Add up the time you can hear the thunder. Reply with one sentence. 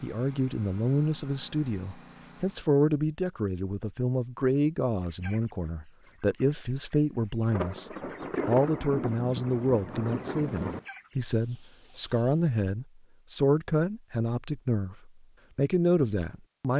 The thunder can be heard for 3 seconds in total.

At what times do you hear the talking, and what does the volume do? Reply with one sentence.
The talking can be heard from 0.0 to 16.7 s, at a steady volume.